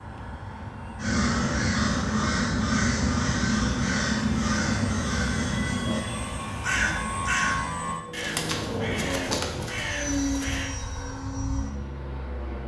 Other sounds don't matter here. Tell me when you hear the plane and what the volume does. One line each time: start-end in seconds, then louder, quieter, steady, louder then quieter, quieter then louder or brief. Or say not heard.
0.0-12.6 louder.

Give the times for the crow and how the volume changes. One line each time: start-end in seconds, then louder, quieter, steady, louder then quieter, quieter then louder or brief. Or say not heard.
1.0-10.7 quieter.